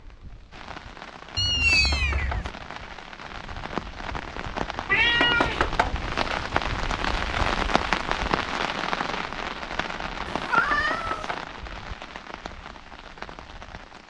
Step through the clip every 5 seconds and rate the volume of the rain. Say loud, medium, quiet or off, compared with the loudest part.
medium, loud, medium.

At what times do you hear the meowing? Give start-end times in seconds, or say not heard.
1.4-2.5, 4.8-5.7, 10.2-11.3.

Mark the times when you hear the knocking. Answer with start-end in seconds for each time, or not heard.
1.7-3.0, 5.2-6.5, 10.7-11.6.